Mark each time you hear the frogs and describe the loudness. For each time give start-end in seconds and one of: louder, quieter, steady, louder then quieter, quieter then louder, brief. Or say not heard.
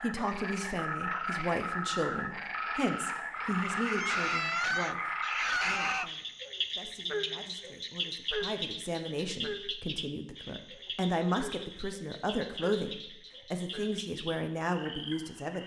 0.0-15.6 quieter.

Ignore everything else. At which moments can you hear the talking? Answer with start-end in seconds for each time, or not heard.
0.0-15.6.